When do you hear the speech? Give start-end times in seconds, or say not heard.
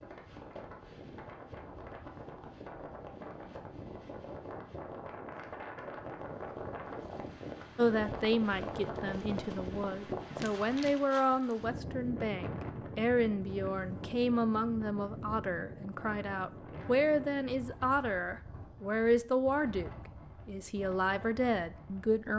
7.8-22.3.